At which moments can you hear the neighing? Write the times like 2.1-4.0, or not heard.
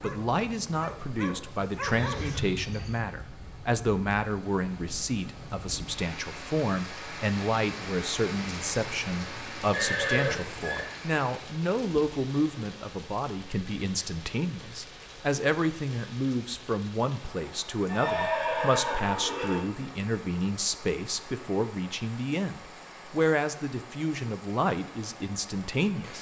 1.8-3.0, 9.7-10.8, 17.9-19.6.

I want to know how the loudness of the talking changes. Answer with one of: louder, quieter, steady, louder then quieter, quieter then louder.
steady.